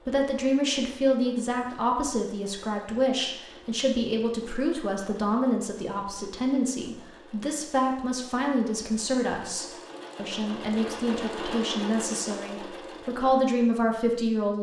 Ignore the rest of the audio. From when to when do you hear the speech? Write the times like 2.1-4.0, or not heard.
0.1-14.5.